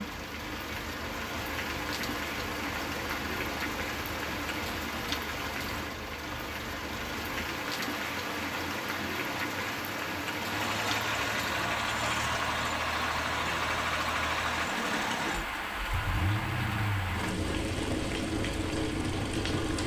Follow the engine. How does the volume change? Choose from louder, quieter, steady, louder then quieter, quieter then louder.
louder.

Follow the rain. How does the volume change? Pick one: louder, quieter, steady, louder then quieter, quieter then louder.
steady.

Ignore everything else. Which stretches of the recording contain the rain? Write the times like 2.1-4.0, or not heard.
0.0-19.8.